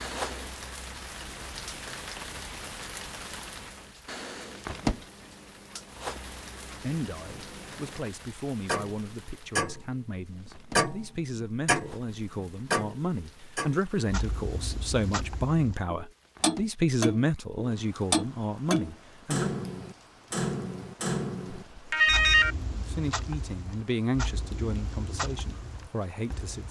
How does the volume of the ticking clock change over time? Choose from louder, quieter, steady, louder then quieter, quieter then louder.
louder then quieter.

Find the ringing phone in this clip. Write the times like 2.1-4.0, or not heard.
21.8-22.6.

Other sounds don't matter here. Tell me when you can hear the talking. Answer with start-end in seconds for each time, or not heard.
6.8-19.5, 22.8-26.6.